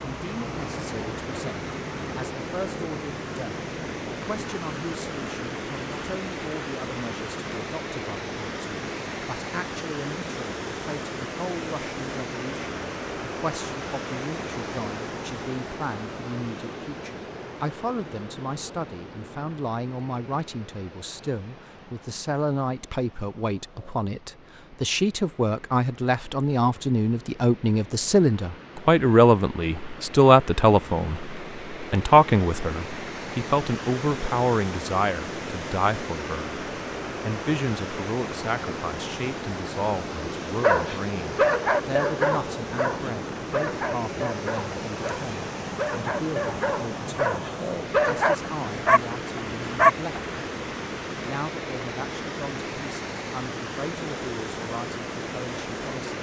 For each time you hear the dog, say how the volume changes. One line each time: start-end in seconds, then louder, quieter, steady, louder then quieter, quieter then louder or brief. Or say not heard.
40.6-50.5 quieter then louder.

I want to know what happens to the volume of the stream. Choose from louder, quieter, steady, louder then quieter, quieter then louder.
quieter then louder.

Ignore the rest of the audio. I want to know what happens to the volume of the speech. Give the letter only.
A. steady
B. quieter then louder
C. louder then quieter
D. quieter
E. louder
C.